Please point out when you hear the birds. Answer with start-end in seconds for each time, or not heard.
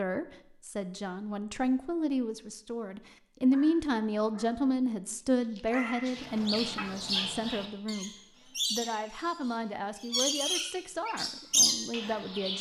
6.1-12.5.